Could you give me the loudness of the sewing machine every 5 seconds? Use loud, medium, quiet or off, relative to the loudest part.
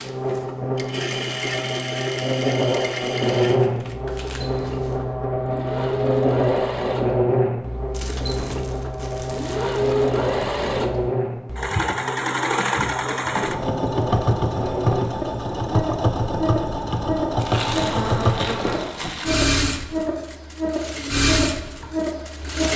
medium, medium, loud, loud, loud.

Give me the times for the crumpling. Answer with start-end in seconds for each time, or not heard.
4.0-5.0, 7.9-9.9, 17.4-19.4.